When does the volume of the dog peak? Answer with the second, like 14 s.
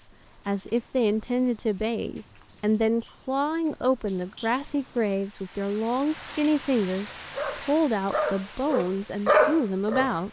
9 s.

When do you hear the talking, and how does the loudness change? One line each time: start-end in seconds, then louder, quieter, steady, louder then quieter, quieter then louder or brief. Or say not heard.
0.0-10.2 steady.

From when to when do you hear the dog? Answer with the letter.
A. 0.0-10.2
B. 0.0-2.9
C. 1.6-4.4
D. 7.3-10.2
D.